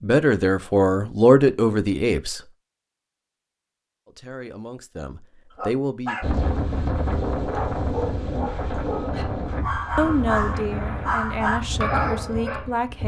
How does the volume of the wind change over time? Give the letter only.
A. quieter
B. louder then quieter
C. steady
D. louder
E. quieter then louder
A.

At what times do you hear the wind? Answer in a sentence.
You can hear the wind from 6.2 to 13.0 s.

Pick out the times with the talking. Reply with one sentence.
The talking can be heard from 0.0 to 2.4 s, from 4.0 to 6.2 s and from 9.9 to 13.0 s.